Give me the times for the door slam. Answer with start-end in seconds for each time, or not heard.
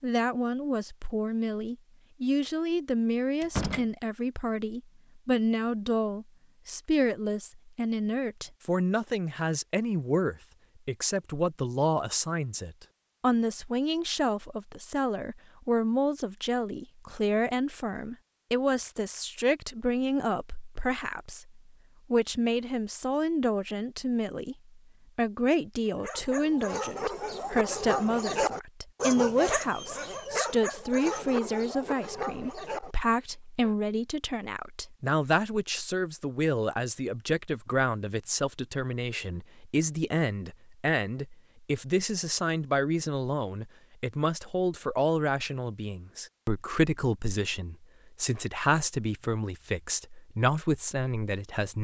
3.4-3.9.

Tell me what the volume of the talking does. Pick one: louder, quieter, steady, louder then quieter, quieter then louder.
steady.